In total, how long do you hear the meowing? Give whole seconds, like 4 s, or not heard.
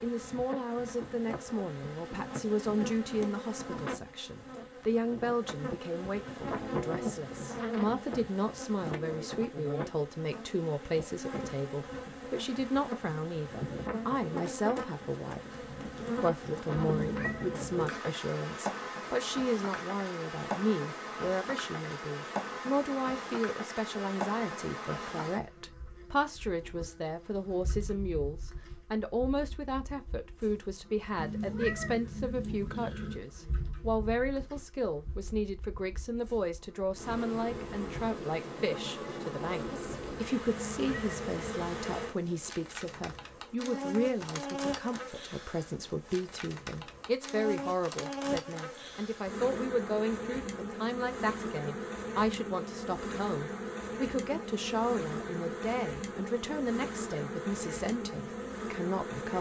4 s.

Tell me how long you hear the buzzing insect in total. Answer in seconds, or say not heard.
59 s.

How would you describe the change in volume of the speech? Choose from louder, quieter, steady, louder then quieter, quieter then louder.
steady.